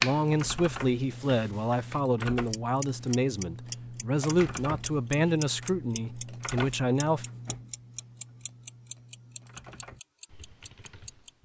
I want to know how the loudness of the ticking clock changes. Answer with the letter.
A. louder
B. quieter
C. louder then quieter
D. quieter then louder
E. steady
C.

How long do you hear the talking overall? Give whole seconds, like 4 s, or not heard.
7 s.